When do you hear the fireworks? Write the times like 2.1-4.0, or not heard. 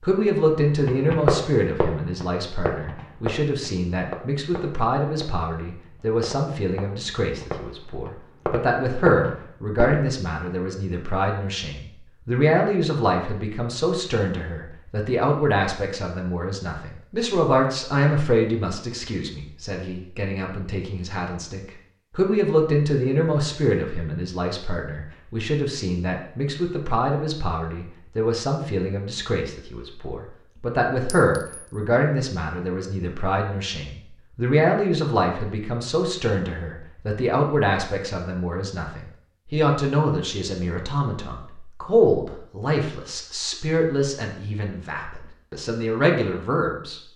0.2-10.1.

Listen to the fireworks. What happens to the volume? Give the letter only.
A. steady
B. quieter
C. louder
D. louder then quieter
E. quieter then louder
E.